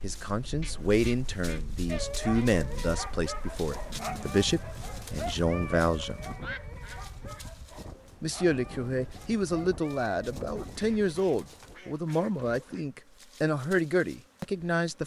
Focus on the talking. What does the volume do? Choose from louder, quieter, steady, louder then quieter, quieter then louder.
steady.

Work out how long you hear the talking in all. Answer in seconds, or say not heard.
13 s.